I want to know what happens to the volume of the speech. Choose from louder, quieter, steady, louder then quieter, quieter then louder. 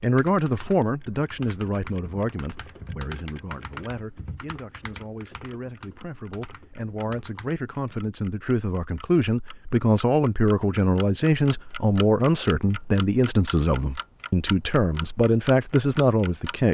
quieter then louder.